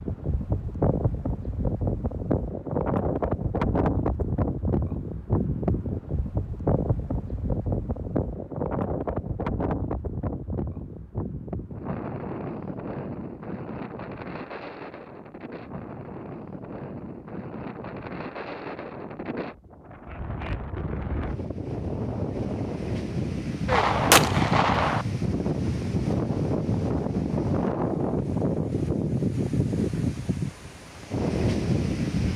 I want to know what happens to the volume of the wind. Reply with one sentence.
The loudness of the wind goes down, then up.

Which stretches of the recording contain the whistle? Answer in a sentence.
You can't hear the whistle here.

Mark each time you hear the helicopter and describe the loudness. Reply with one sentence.
The helicopter can't be heard in this clip.